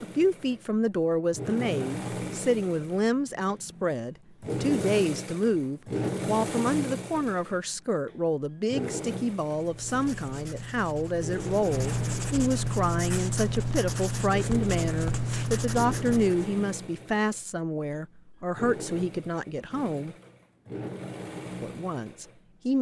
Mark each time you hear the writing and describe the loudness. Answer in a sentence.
You can hear the writing from 9.4 to 16.5 s, getting louder.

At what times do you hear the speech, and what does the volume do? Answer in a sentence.
You can hear the speech from 0.0 to 20.1 s, at a steady volume; and briefly from 21.6 to 22.7 s.